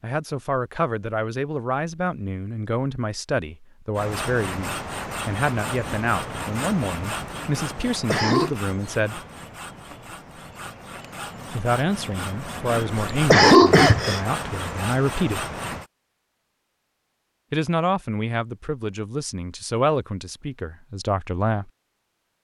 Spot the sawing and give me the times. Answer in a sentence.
You can hear the sawing from 4.0 to 15.8 s.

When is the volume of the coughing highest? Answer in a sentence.
The volume of the coughing peaks at 13 seconds.